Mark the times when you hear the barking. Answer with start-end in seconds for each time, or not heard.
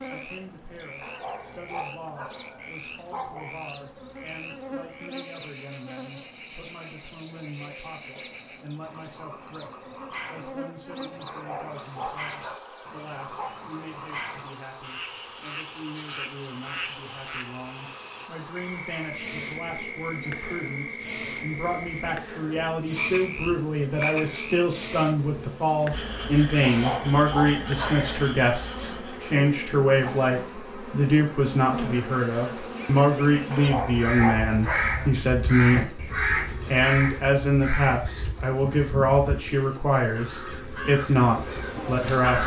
1.0-3.5, 11.2-13.6, 26.6-28.1, 33.5-35.1.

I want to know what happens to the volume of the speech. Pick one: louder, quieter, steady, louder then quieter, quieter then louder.
louder.